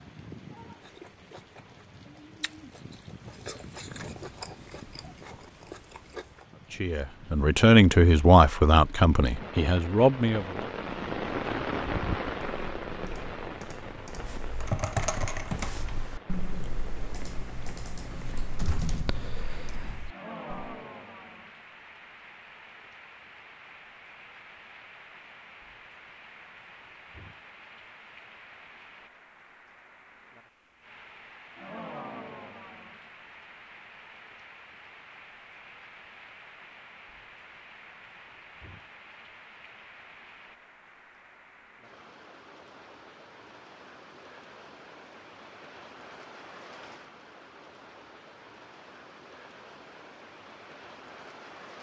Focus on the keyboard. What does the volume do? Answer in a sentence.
The volume of the keyboard goes up, then down.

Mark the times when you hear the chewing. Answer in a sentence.
The chewing can be heard from 0.8 to 6.5 s.